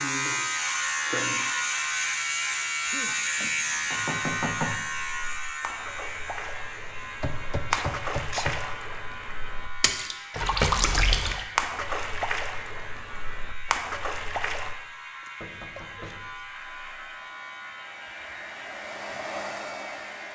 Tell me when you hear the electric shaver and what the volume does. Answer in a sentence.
You can hear the electric shaver from 0.0 to 20.3 s, getting quieter.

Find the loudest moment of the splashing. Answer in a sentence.
The loudest moment of the splashing is at 11 seconds.